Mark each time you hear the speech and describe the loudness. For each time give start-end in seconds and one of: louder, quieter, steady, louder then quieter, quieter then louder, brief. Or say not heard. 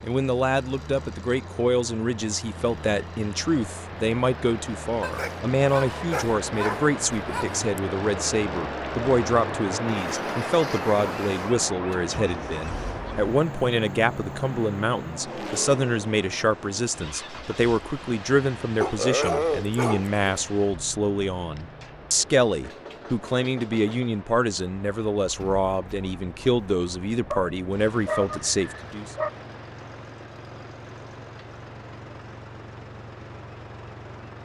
0.0-29.1 steady.